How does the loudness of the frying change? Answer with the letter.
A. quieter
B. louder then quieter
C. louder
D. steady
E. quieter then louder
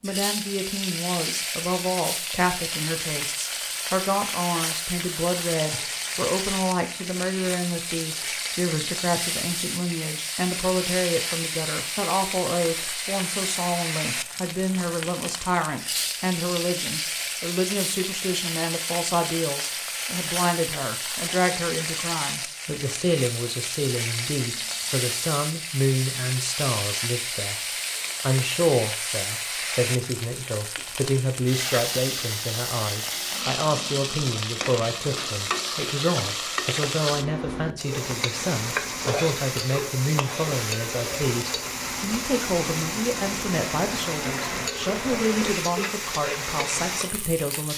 D.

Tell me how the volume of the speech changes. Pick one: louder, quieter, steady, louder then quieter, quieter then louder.
steady.